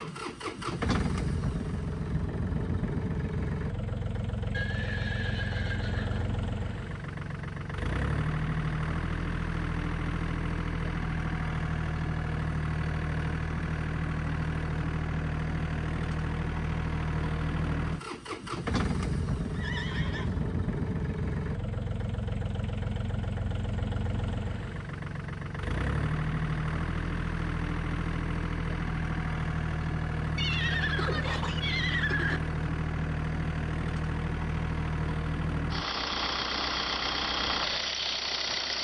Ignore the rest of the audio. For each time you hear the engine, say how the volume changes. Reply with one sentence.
You can hear the engine from 0.0 to 38.7 s, at a steady volume.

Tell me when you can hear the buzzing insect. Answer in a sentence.
You can't hear the buzzing insect here.